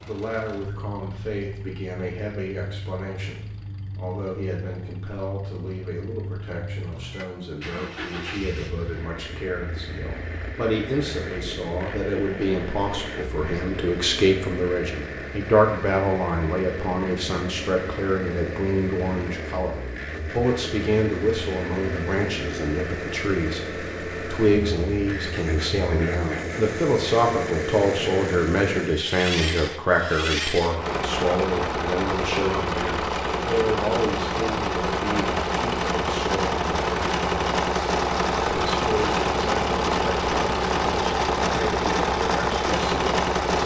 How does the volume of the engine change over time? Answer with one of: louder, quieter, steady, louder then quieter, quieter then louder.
louder.